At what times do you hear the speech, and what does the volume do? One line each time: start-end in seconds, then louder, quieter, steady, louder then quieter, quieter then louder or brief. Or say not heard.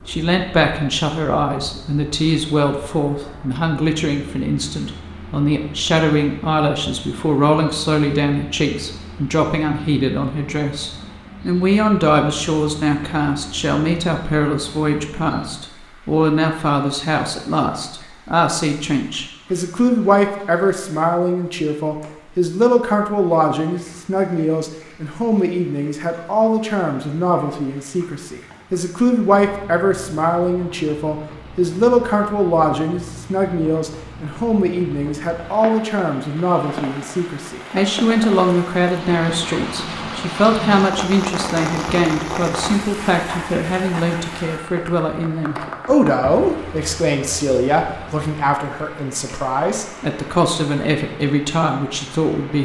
0.1-52.6 steady.